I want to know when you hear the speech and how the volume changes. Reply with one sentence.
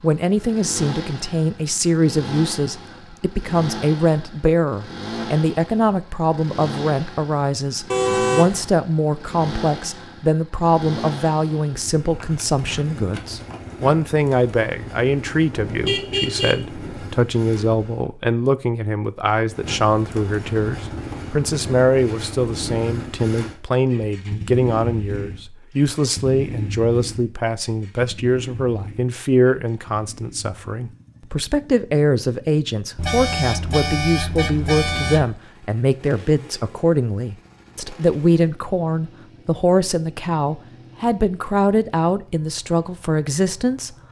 The speech can be heard from 0.0 to 44.0 s, at a steady volume.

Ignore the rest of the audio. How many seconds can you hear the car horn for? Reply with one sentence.
You can hear the car horn for 4 seconds altogether.